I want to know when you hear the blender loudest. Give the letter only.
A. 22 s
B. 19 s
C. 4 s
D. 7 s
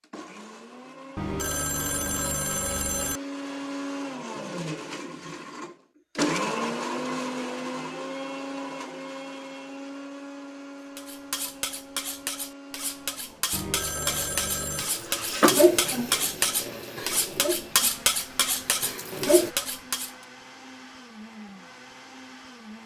D.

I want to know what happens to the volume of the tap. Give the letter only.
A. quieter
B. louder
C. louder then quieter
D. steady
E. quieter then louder
A.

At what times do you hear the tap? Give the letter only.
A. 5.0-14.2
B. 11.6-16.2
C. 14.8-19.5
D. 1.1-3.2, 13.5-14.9
C.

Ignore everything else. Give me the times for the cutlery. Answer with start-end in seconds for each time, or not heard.
10.9-20.1.